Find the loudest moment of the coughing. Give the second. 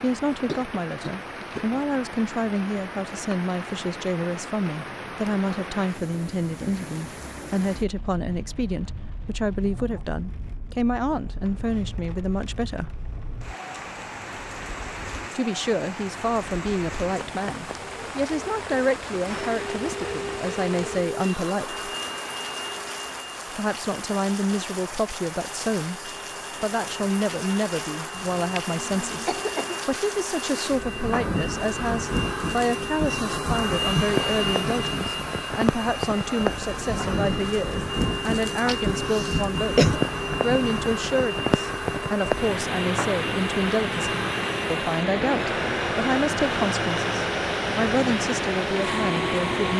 40 s.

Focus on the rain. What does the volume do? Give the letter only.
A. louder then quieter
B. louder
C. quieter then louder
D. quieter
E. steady
B.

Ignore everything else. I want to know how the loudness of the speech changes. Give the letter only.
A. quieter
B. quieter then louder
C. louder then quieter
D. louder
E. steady
E.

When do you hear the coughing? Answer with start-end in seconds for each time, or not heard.
0.3-1.7, 28.1-29.8, 38.6-40.0.